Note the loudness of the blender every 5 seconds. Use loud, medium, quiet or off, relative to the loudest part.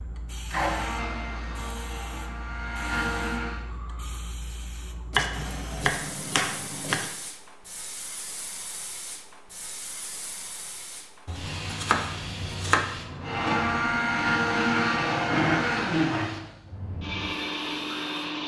medium, off, loud, loud.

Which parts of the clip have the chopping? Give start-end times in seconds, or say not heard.
5.1-7.1, 11.2-12.8.